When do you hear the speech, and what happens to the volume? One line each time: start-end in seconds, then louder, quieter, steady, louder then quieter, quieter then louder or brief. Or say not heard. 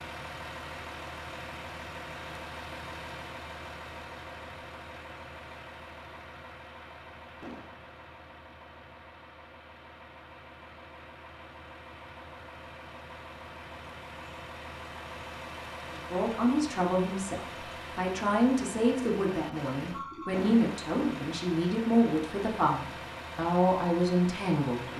15.9-24.9 steady.